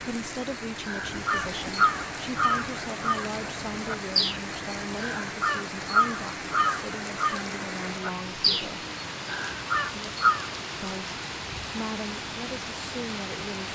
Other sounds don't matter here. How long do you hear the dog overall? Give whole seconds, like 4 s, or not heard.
not heard.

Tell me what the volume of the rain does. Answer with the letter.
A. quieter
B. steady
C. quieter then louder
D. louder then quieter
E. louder
B.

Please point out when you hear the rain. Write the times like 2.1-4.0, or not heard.
0.0-13.7.